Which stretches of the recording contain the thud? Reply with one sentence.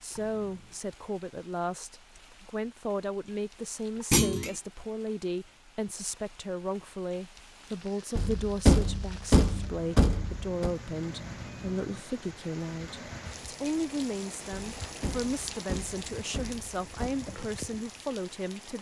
The thud can be heard from 4.1 to 4.5 s, from 8.2 to 10.7 s and from 14.5 to 17.1 s.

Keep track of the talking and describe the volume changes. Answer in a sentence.
The volume of the talking stays about the same.